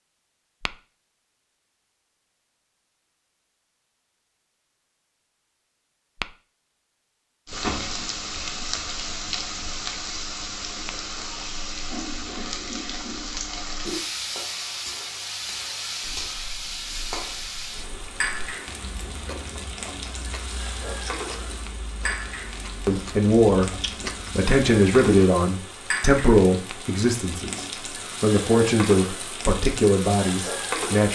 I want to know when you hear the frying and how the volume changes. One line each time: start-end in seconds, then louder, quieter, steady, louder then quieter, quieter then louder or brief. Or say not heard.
7.5-31.1 steady.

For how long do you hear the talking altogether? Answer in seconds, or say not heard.
8 s.